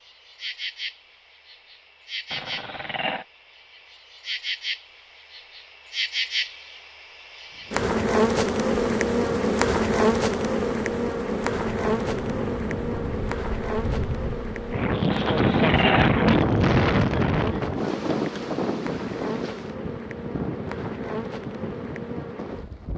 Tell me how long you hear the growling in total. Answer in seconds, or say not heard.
2 s.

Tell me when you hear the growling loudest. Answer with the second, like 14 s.
16 s.